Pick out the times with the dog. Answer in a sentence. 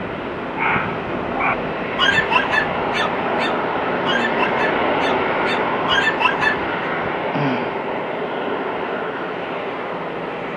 The dog can be heard from 0.6 to 6.7 s.